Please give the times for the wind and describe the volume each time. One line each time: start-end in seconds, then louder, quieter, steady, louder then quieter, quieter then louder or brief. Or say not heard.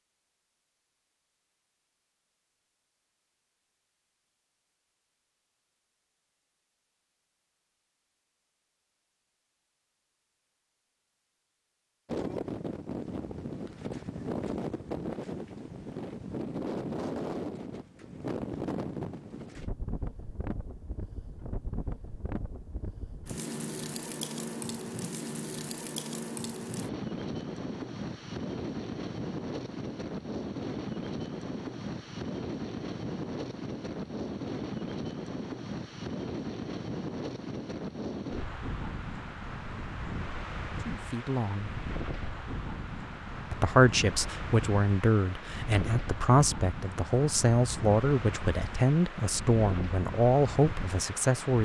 12.1-51.5 steady.